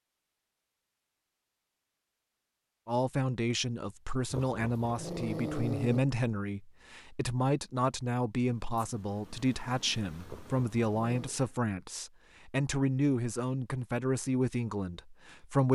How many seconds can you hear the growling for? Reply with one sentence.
The growling can be heard for 3 seconds in total.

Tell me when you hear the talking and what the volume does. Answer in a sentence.
You can hear the talking from 2.9 to 15.7 s, at a steady volume.